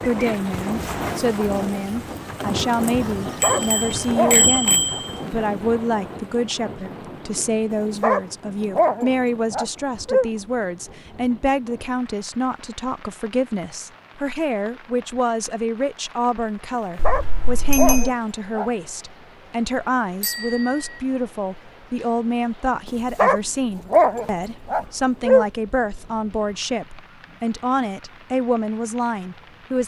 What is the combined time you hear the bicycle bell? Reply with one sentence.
You can hear the bicycle bell for 4 seconds altogether.